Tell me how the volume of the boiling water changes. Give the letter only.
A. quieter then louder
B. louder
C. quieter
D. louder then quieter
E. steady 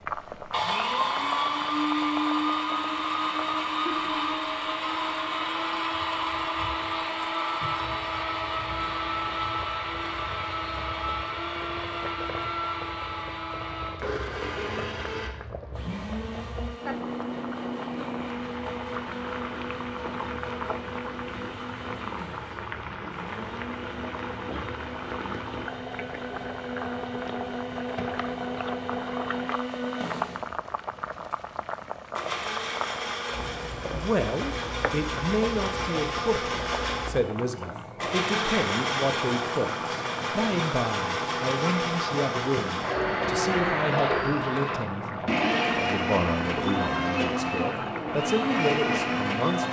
B.